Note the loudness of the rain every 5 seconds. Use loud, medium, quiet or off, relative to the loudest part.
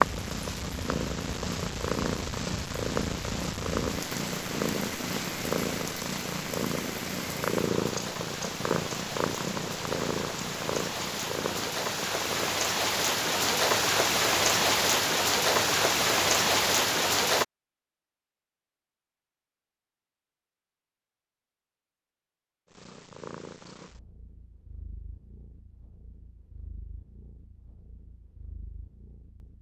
quiet, quiet, loud, loud, off, off.